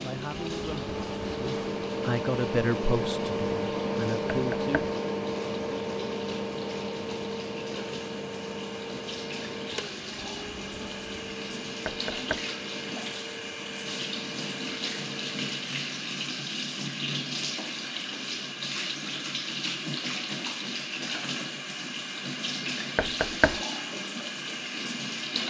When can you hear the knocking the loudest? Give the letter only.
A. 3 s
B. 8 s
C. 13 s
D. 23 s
D.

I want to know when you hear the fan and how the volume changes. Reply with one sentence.
You can hear the fan from 0.0 to 15.6 s, getting quieter.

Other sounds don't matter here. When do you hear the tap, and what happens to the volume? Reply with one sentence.
The tap can be heard from 0.0 to 25.4 s, getting louder.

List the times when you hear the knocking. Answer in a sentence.
The knocking can be heard from 4.3 to 4.9 s, from 11.8 to 12.4 s and from 22.9 to 23.6 s.